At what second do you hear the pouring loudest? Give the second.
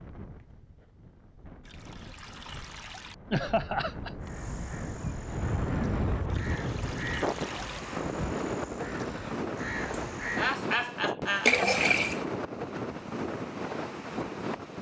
12 s.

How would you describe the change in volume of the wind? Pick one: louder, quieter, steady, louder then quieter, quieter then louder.
louder.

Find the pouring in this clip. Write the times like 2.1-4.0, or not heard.
1.6-3.1, 6.2-7.8, 11.4-12.2.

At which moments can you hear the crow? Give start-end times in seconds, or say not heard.
4.2-10.6.